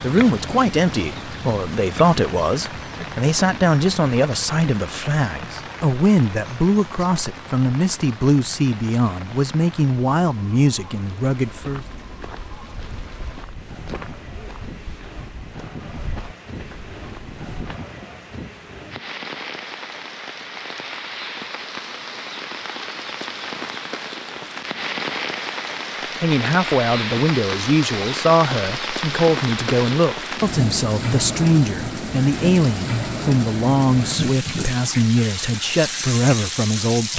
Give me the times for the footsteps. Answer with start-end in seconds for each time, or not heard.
11.4-17.8.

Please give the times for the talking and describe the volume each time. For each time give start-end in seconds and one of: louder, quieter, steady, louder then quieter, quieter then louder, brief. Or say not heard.
0.0-11.8 steady
26.2-37.1 steady.